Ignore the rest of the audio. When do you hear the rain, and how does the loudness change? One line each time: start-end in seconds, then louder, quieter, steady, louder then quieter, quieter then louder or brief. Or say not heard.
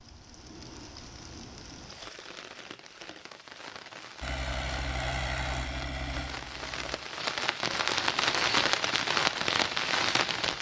0.0-10.5 louder.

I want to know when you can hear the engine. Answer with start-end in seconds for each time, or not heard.
4.2-7.0.